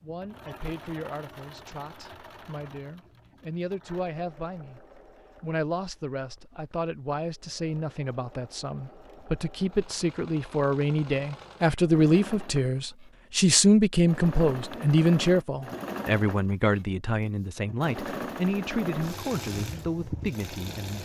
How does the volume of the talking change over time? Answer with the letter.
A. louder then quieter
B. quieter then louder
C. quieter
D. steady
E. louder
A.